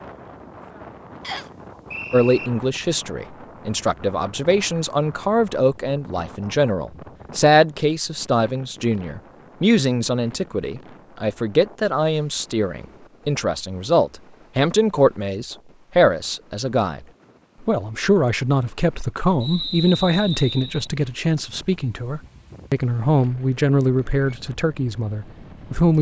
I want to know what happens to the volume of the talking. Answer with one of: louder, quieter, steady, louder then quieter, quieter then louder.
steady.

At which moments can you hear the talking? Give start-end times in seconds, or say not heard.
2.1-17.1, 17.6-25.9.